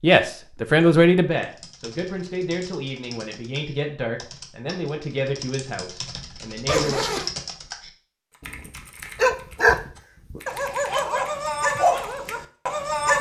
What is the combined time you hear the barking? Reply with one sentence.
You can hear the barking for 5 seconds altogether.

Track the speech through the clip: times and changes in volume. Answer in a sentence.
You can hear the speech from 0.0 to 7.0 s, getting quieter.